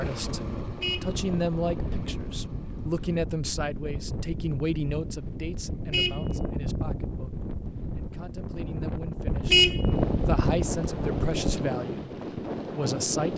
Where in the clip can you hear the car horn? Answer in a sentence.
You can hear the car horn from 0.6 to 1.9 s, from 5.7 to 7.2 s and from 9.2 to 11.7 s.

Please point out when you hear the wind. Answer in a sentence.
You can hear the wind from 0.0 to 13.3 s.